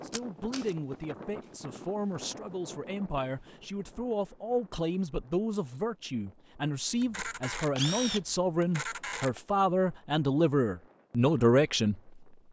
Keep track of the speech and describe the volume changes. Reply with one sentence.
The volume of the speech goes up.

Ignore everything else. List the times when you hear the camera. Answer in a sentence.
You can hear the camera from 0.1 to 0.8 s and from 7.0 to 9.4 s.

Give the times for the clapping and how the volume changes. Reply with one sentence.
The clapping can't be heard in this clip.